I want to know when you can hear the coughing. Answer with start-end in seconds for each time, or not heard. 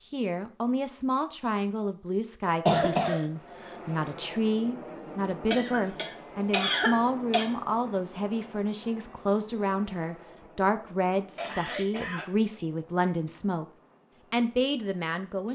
2.5-3.2, 5.5-7.5, 11.3-12.2.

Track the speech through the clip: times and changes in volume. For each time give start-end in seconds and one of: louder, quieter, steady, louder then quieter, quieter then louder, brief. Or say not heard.
0.1-13.7 steady
14.3-15.4 brief.